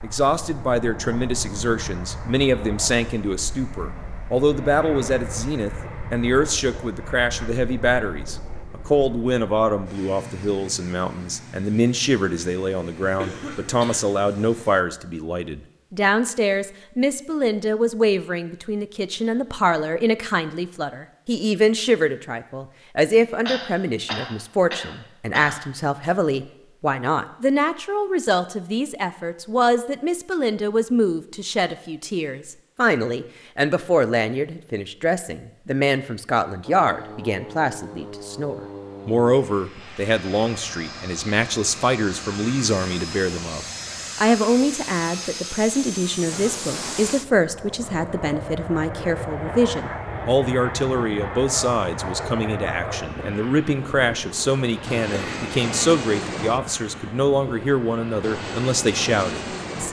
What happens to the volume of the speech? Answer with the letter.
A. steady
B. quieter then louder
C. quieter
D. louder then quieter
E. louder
A.